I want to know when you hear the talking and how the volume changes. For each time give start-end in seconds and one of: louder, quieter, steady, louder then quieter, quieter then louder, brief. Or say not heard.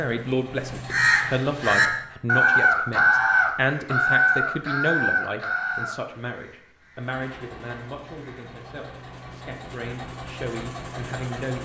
0.0-11.6 quieter.